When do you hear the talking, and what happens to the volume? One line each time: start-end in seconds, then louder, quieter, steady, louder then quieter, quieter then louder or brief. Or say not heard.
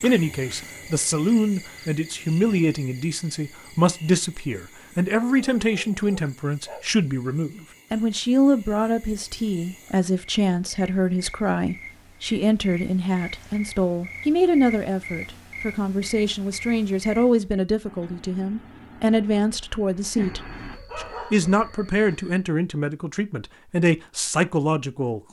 0.0-25.2 steady.